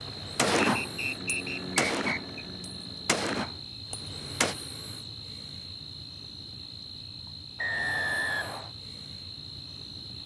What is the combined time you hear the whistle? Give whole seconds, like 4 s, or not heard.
3 s.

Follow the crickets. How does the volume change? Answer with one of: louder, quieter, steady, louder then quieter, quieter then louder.
steady.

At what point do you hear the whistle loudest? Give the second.
8 s.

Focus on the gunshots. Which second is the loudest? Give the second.
1 s.